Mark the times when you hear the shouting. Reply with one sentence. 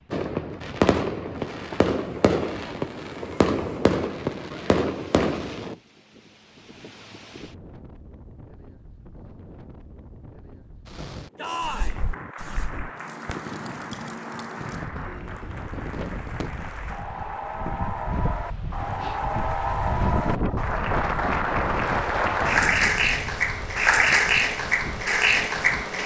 The shouting can be heard from 11.3 to 12.0 s.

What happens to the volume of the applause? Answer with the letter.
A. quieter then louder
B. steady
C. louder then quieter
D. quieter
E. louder
E.